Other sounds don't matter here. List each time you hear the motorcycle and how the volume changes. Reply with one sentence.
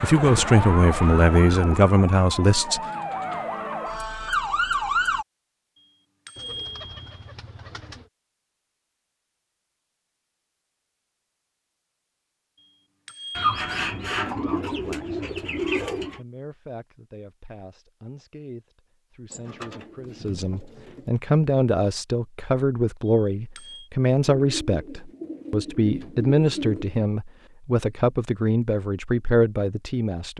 The motorcycle can't be heard in this clip.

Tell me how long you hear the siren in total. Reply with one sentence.
The siren can be heard for 5 seconds in total.